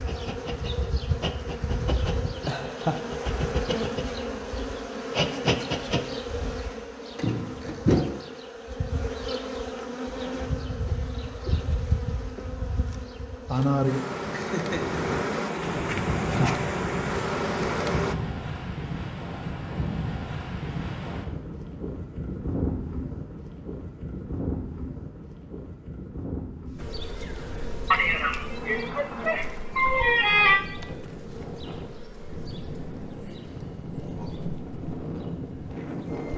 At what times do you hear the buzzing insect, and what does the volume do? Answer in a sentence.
You can hear the buzzing insect from 0.0 to 18.1 s, at a steady volume; and from 26.8 to 36.3 s, getting quieter.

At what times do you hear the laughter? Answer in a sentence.
You can hear the laughter from 2.5 to 3.0 s, from 14.2 to 15.6 s and from 27.9 to 30.6 s.